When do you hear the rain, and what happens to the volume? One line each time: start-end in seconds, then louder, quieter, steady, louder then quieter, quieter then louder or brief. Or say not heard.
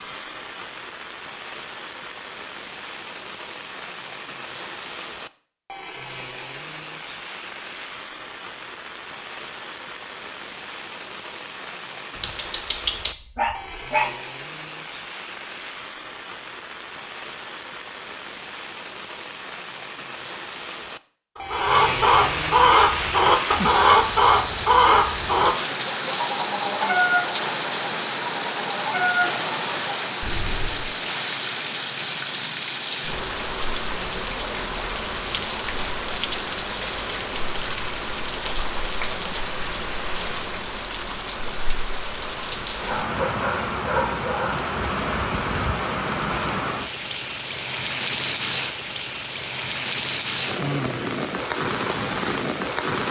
0.0-53.0 louder.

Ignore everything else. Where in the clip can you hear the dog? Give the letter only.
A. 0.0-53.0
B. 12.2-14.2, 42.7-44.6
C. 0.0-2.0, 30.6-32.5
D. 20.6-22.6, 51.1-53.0
B.